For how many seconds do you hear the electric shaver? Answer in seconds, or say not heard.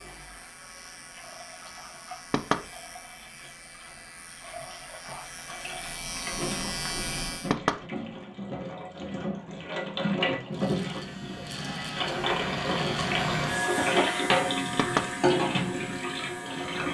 14 s.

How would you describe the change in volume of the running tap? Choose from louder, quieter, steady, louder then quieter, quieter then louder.
louder.